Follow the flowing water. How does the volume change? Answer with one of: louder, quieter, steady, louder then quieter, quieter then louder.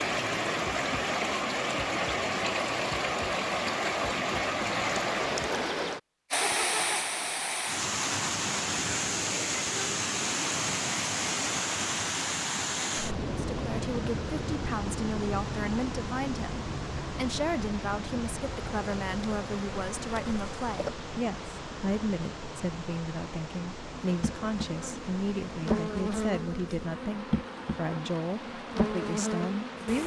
quieter.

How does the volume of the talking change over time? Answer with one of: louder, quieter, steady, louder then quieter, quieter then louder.
steady.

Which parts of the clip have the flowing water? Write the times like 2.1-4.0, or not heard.
0.0-30.0.